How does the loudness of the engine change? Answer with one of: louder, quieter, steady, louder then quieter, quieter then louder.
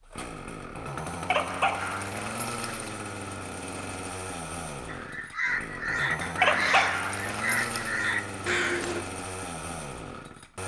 steady.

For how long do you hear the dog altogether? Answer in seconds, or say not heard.
3 s.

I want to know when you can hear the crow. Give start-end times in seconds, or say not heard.
4.8-9.1.